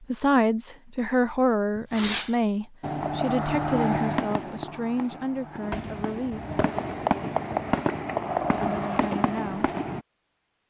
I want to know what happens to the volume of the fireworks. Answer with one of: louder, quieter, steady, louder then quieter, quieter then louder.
quieter then louder.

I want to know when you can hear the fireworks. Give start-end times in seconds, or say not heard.
1.8-10.1.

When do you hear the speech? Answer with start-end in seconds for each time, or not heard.
0.1-6.4, 8.6-9.7.